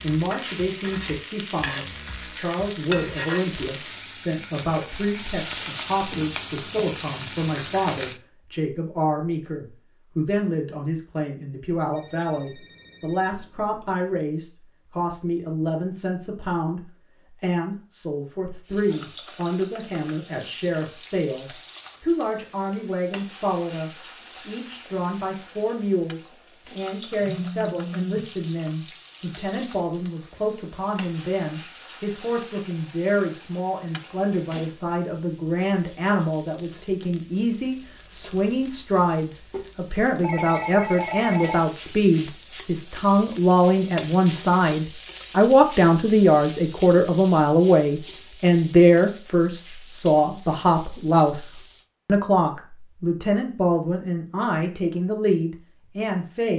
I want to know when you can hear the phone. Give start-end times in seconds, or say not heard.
11.9-14.1, 27.2-28.3, 40.2-41.6.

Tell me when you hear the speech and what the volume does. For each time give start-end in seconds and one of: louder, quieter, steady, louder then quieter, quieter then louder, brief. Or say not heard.
0.0-56.5 louder.